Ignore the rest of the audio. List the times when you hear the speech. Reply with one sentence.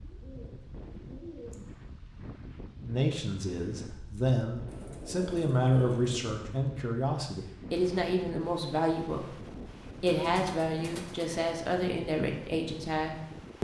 The speech can be heard from 2.8 to 13.5 s.